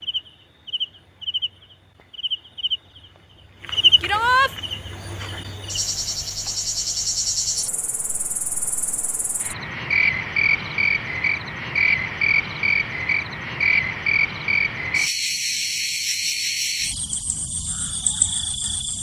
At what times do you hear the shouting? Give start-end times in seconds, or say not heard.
4.0-4.5.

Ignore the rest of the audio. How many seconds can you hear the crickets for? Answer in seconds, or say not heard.
19 s.